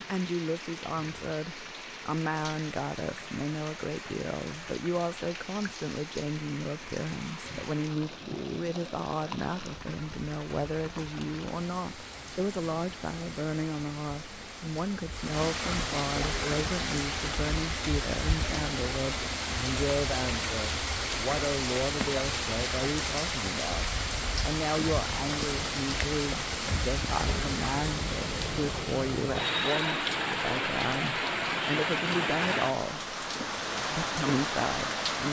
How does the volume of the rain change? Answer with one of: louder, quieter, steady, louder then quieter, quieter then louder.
louder.